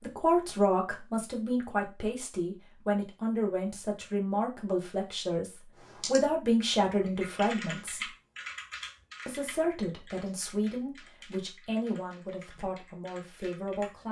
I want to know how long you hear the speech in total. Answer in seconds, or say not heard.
13 s.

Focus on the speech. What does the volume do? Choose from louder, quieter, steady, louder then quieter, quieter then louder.
quieter.